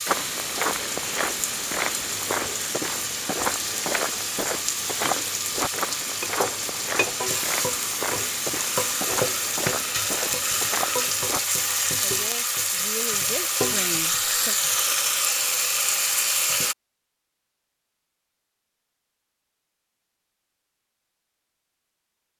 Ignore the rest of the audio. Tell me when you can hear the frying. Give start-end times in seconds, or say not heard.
0.0-16.8.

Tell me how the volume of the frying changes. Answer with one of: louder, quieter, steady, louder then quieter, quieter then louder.
louder.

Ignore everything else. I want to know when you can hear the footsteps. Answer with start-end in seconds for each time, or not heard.
0.1-11.4.